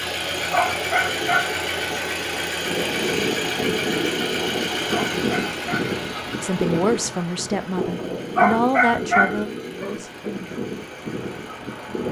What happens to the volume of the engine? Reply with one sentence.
The volume of the engine goes down.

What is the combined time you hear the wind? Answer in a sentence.
You can hear the wind for 9 seconds altogether.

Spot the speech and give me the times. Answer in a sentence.
You can hear the speech from 6.4 to 10.2 s.